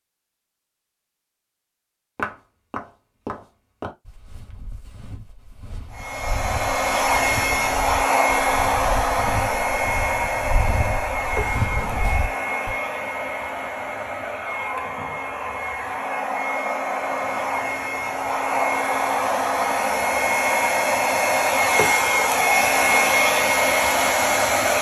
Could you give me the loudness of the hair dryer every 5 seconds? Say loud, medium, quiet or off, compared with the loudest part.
off, loud, medium, medium, loud.